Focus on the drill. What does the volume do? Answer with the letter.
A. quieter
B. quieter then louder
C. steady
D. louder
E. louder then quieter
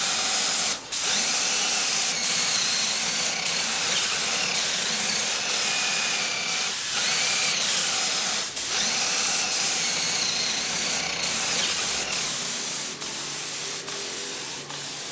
C.